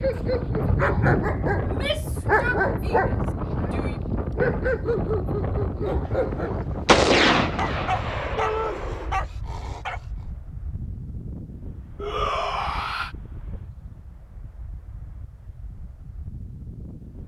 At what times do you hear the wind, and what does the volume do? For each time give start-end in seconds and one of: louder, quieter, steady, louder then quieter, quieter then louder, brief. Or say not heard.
0.0-17.2 quieter.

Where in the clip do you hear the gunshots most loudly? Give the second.
7 s.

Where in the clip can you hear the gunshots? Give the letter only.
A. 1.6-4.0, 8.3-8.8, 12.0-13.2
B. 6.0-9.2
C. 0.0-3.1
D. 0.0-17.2
B.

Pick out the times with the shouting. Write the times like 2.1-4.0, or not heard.
1.6-4.0, 8.3-8.8, 12.0-13.2.